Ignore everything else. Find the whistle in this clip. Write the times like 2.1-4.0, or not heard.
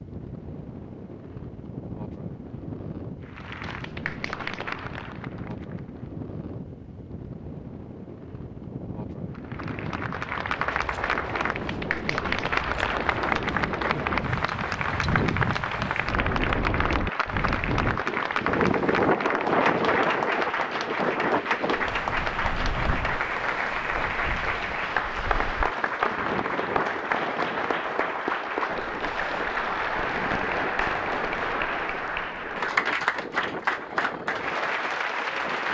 not heard.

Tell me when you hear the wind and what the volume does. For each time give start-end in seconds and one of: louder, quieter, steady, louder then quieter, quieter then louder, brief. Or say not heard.
0.0-35.6 louder then quieter.